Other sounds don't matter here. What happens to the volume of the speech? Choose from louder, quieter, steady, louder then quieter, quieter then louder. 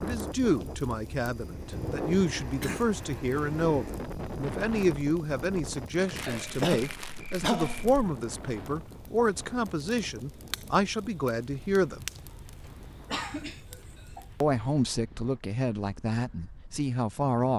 steady.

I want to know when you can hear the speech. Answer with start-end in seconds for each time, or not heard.
0.0-12.1, 14.4-17.5.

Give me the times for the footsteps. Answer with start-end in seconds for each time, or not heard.
not heard.